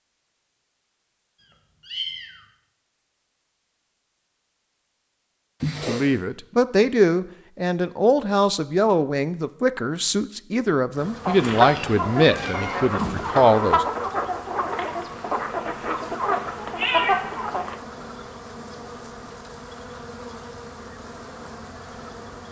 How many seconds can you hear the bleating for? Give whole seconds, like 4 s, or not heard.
not heard.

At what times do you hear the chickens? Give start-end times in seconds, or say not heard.
11.2-17.8.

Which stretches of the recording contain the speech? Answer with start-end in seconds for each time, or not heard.
5.8-13.8.